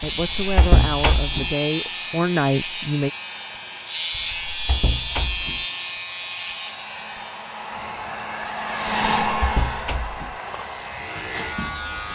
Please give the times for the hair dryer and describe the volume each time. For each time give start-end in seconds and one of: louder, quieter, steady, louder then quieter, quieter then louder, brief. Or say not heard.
0.0-12.1 louder then quieter.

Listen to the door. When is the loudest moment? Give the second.
1 s.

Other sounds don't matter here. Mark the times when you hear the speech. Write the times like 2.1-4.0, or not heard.
0.0-3.1.